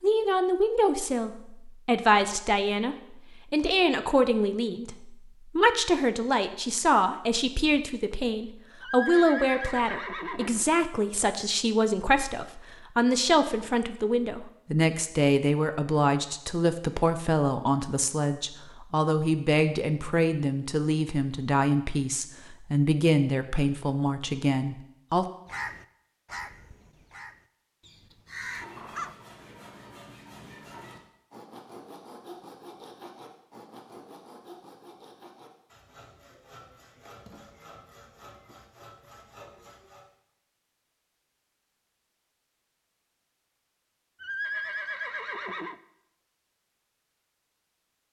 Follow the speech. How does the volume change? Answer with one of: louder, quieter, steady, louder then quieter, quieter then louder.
steady.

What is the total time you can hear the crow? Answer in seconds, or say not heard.
4 s.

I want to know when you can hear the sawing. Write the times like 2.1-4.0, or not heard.
28.2-40.1.